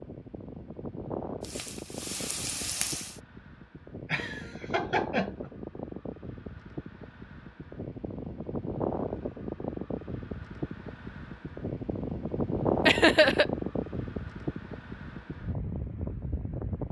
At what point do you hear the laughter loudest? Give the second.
13 s.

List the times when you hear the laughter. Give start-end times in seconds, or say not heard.
4.0-5.5, 12.8-13.4.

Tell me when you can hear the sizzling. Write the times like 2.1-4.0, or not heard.
1.4-3.2.